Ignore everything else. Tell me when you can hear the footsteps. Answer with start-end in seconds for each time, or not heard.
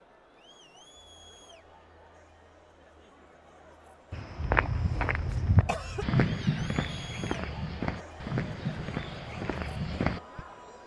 4.1-10.4.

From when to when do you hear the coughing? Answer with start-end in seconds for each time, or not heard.
4.3-6.1.